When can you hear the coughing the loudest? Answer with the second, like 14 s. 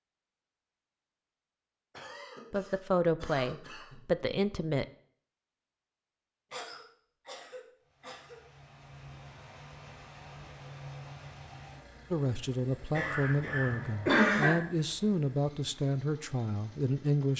14 s.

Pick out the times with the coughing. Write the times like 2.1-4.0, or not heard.
1.9-4.0, 6.5-8.4, 12.9-14.6.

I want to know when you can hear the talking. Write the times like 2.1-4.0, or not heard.
2.5-4.8, 12.1-17.3.